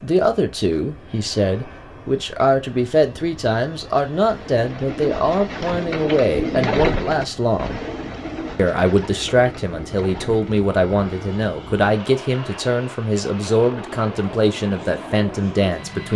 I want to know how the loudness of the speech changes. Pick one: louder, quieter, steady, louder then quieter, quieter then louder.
steady.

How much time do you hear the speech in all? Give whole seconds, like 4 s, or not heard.
15 s.